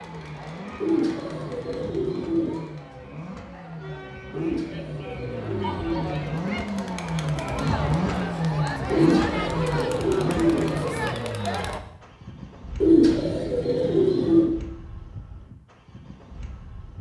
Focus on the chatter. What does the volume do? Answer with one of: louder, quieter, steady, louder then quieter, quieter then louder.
louder.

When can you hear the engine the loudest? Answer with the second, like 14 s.
8 s.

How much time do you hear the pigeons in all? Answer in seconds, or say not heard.
8 s.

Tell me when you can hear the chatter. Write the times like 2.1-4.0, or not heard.
0.0-11.8.